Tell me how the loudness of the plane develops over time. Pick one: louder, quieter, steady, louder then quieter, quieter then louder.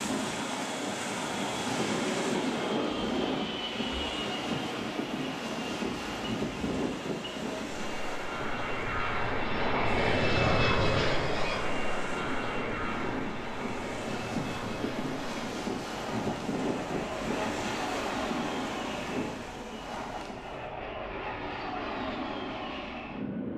louder then quieter.